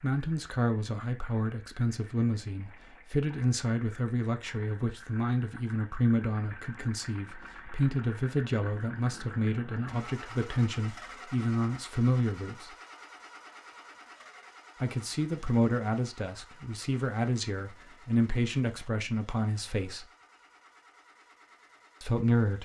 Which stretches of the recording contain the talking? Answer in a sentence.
You can hear the talking from 0.0 to 12.7 s, from 14.8 to 20.1 s and from 22.0 to 22.6 s.